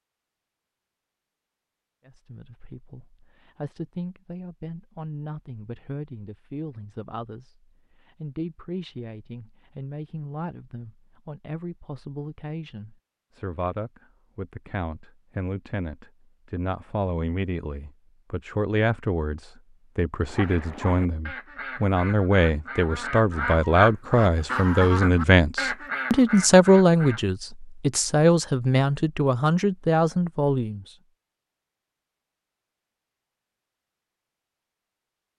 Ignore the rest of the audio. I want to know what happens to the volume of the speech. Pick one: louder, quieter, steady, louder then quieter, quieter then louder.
louder.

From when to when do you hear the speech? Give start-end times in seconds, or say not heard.
2.0-30.9.